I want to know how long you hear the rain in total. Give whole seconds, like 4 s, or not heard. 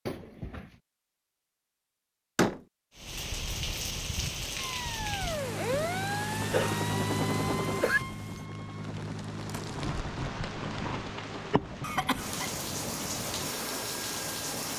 12 s.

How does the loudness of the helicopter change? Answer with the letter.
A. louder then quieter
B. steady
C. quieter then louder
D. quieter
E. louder
D.